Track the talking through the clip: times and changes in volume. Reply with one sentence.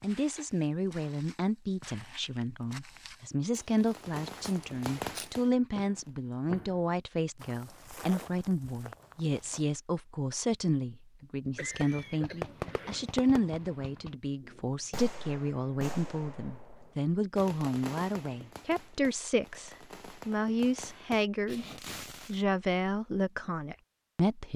You can hear the talking from 0.0 to 21.6 s, at a steady volume; and briefly from 22.2 to 24.5 s.